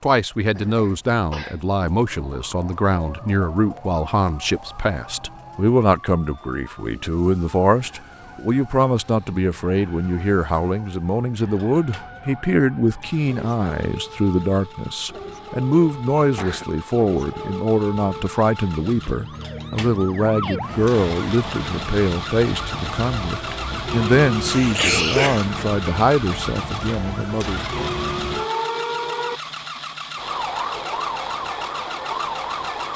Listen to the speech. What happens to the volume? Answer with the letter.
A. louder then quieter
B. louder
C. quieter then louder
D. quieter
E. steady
E.